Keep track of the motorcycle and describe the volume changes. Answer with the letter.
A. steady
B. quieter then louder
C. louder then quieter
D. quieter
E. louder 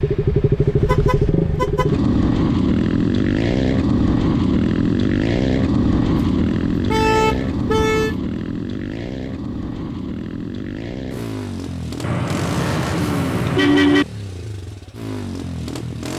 D.